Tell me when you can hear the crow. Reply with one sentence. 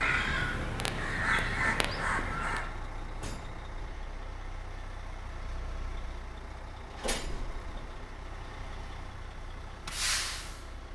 You can hear the crow from 0.0 to 2.7 s.